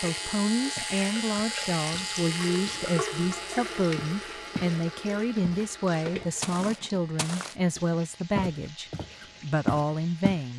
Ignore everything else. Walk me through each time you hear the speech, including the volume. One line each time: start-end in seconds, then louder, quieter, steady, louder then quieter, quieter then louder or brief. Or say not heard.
0.0-10.5 steady.